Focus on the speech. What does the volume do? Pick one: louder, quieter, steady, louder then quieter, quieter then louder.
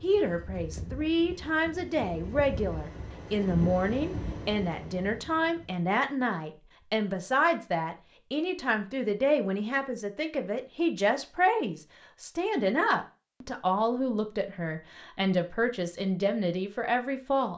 steady.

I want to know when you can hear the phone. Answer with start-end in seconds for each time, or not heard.
not heard.